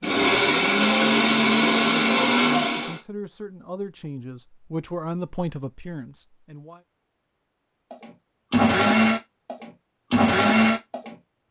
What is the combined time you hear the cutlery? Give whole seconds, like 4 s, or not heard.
not heard.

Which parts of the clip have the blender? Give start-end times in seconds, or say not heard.
0.0-3.0, 7.9-11.2.